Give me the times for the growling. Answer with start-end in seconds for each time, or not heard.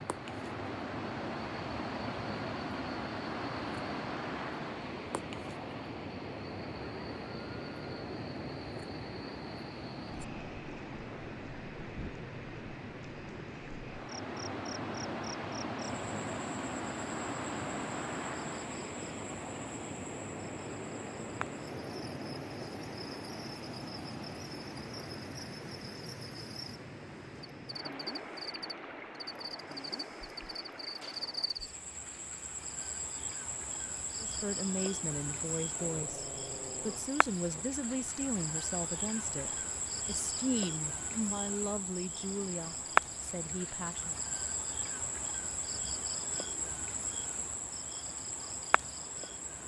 35.6-37.6.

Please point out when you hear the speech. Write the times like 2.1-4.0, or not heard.
34.2-44.1.